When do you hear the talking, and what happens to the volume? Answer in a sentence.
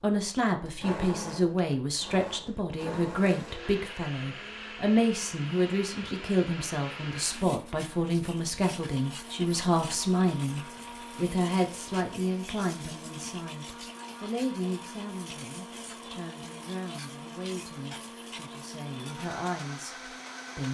The talking can be heard from 0.0 to 20.7 s, getting quieter.